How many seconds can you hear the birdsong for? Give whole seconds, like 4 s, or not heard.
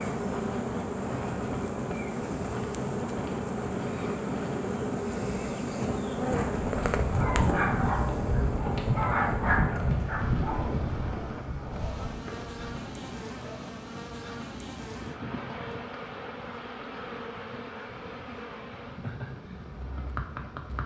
not heard.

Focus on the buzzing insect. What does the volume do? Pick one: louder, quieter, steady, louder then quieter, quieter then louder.
quieter.